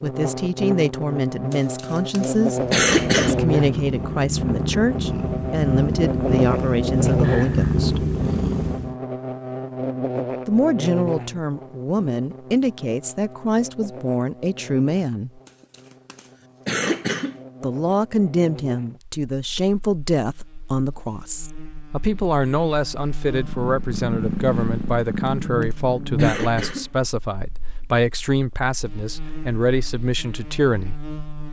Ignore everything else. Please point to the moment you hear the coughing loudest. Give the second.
3 s.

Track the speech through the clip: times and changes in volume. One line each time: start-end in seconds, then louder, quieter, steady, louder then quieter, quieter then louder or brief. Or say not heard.
0.0-8.1 steady
10.4-15.4 steady
17.6-30.9 steady.